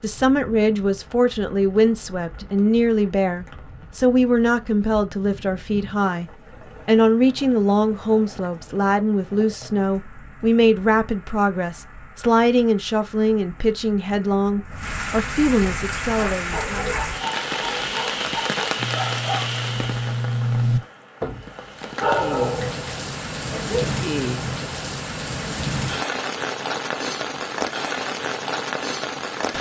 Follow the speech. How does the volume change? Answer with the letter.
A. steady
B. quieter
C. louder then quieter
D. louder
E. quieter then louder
A.